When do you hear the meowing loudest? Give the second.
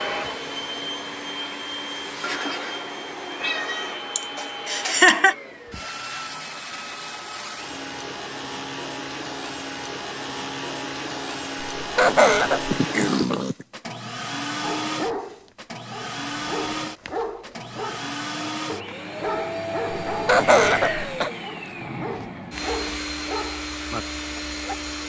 13 s.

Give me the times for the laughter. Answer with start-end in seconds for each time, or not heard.
4.2-5.3, 11.8-12.8, 20.1-21.3.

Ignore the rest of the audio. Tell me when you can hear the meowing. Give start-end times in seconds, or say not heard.
2.2-4.0, 12.7-13.7, 19.9-21.1.